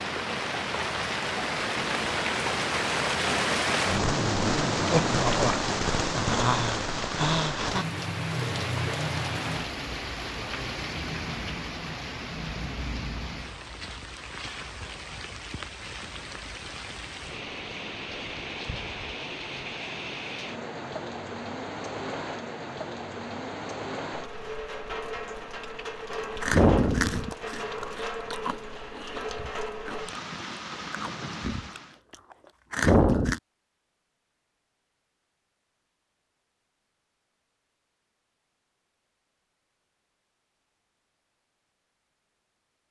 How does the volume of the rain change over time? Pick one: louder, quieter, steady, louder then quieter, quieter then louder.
quieter.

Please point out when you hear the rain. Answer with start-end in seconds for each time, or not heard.
0.0-32.0.